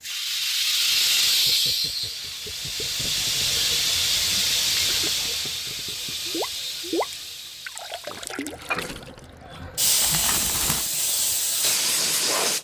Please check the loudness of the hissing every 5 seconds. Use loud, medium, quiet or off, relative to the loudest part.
loud, medium, loud.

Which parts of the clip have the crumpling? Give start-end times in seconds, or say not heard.
10.0-10.9.